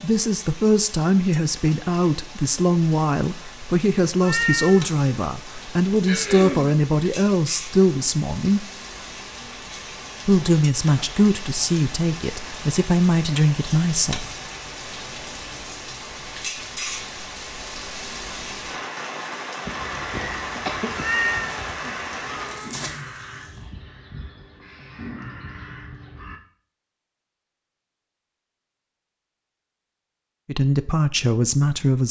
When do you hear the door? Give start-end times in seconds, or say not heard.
not heard.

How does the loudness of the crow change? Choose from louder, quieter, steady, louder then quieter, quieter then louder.
quieter then louder.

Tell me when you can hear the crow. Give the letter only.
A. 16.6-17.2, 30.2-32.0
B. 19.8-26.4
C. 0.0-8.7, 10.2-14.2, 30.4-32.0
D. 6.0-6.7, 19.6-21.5
B.